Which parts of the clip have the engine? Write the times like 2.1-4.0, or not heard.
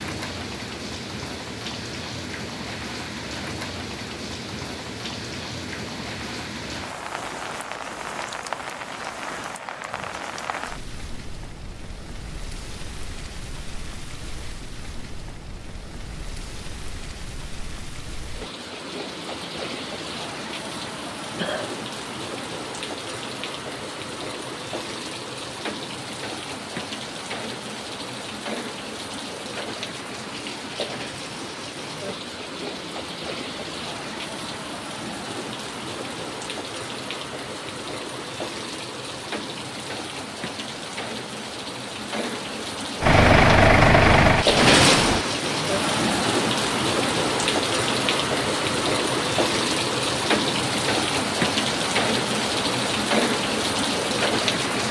43.0-45.2.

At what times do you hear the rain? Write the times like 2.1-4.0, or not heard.
0.0-54.8.